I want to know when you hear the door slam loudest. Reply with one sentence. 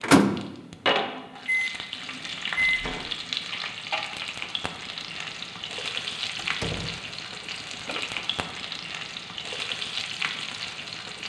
The volume of the door slam peaks at 7 seconds.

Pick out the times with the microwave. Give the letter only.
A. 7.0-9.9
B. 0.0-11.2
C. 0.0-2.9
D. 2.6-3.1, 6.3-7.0
C.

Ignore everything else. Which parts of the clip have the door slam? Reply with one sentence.
The door slam can be heard from 2.6 to 3.1 s and from 6.3 to 7.0 s.